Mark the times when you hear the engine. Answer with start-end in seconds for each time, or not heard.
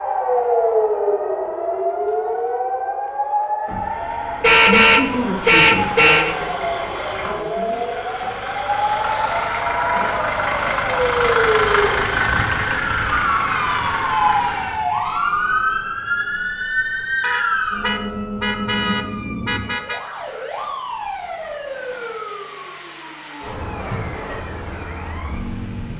3.6-14.8.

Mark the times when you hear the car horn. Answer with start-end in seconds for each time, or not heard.
4.4-6.3, 17.2-20.0.